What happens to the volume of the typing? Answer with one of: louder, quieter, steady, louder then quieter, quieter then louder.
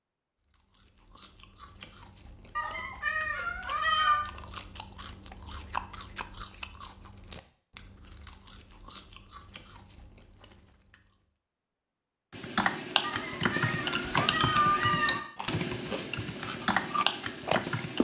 steady.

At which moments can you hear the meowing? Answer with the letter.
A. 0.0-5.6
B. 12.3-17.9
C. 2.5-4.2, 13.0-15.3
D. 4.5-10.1
C.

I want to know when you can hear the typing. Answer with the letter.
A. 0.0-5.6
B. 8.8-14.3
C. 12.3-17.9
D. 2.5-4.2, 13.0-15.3
C.